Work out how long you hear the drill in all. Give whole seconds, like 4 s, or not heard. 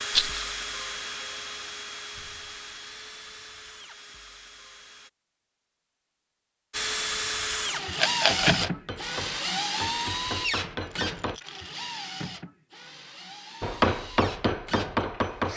14 s.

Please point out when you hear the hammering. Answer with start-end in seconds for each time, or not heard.
8.2-11.4, 13.6-15.5.